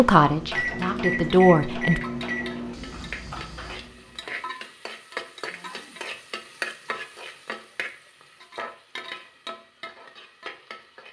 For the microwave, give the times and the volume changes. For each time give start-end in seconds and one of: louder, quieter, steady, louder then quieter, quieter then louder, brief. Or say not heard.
0.2-4.4 quieter.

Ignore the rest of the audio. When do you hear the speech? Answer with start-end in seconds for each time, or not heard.
0.0-2.0.